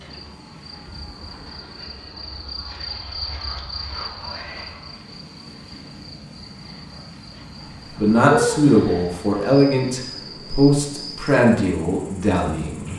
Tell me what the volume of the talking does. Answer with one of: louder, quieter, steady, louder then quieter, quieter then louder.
quieter.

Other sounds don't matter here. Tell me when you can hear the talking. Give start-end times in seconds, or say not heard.
7.8-12.9.